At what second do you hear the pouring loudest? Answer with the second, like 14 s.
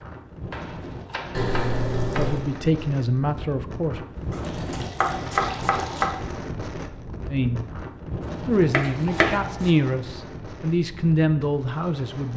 2 s.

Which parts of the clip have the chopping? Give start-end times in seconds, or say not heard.
0.5-2.6, 4.3-6.1, 8.7-9.8.